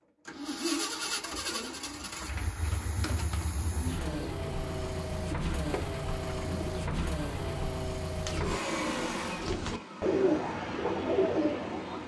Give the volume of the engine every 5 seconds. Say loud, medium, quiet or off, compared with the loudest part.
loud, loud, medium.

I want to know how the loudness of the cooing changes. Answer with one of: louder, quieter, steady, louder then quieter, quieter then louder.
louder.